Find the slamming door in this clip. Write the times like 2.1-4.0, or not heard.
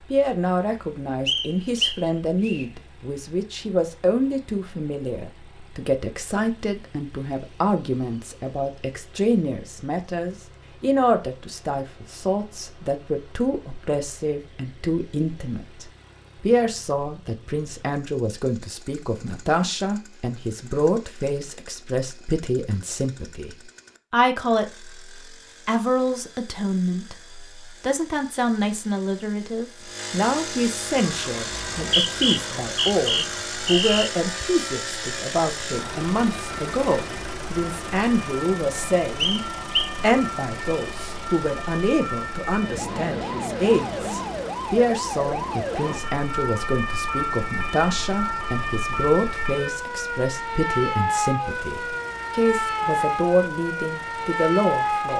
not heard.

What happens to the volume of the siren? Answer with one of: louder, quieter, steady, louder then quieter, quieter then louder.
louder.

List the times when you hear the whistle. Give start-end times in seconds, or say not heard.
1.2-2.6, 31.8-34.1, 39.2-40.0.